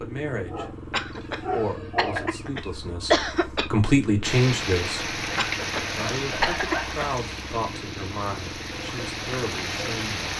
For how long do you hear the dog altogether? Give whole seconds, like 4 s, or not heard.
3 s.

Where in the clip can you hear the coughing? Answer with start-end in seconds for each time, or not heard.
0.9-3.7, 5.3-7.2.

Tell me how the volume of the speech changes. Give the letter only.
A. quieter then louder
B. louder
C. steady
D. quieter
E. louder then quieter
E.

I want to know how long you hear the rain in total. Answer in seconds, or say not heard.
6 s.